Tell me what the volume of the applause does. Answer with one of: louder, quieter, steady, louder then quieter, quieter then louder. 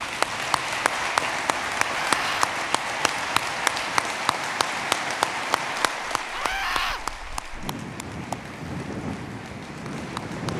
quieter.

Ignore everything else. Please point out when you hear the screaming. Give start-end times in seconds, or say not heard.
1.9-2.5, 6.3-7.0.